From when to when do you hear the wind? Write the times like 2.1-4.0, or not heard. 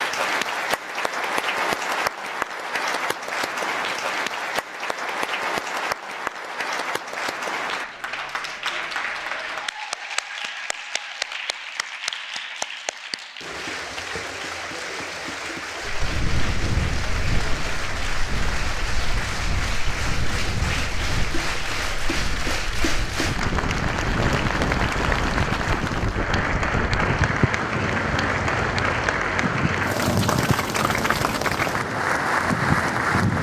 15.8-33.3.